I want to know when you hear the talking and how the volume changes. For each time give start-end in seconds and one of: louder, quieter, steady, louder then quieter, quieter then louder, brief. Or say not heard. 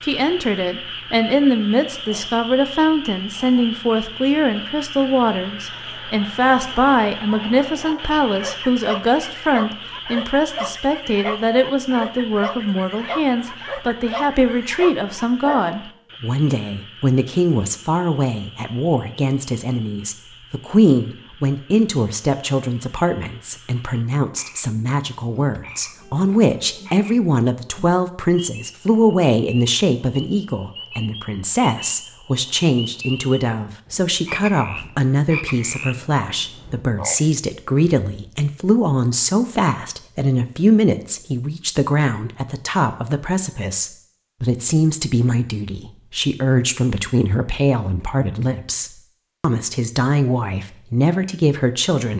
0.0-52.1 steady.